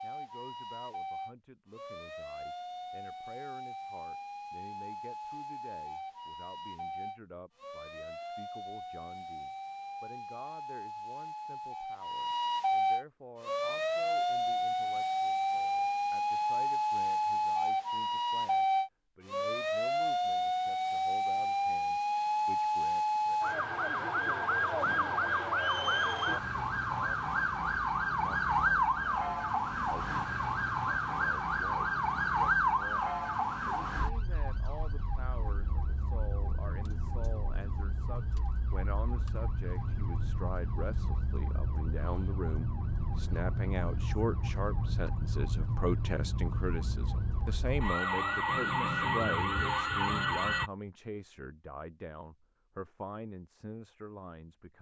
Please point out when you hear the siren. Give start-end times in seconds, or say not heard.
0.0-50.7.